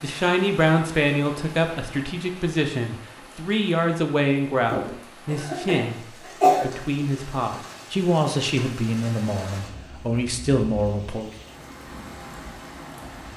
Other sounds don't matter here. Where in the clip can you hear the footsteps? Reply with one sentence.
The footsteps can't be heard in this clip.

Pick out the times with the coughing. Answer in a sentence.
The coughing can be heard from 4.7 to 6.7 s.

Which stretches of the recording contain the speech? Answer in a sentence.
You can hear the speech from 0.0 to 6.0 s and from 6.6 to 11.3 s.